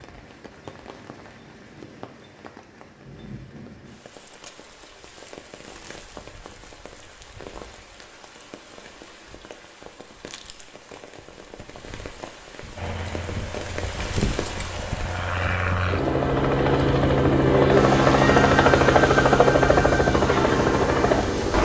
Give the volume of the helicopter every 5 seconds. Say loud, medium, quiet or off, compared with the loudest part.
off, off, quiet, loud, loud.